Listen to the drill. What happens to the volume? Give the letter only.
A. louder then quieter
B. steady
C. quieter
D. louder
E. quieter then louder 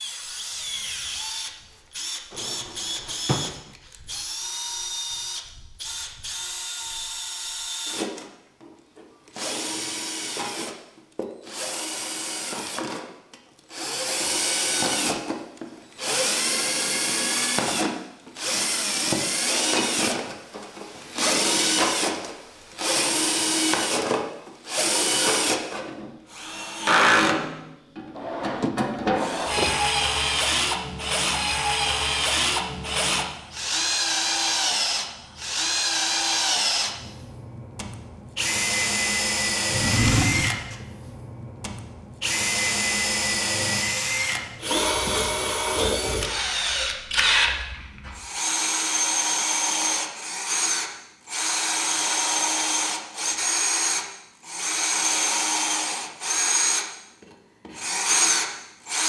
D.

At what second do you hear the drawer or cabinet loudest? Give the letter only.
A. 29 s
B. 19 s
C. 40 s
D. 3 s
C.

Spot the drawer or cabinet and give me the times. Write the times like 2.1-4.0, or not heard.
2.3-3.5, 28.1-29.8, 39.7-40.6.